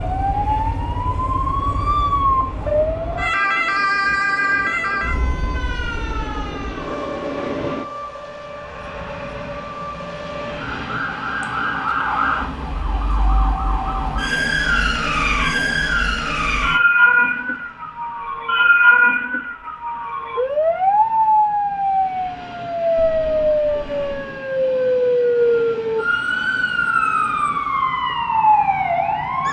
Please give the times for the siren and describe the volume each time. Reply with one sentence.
The siren can be heard from 0.0 to 29.4 s, getting quieter then louder.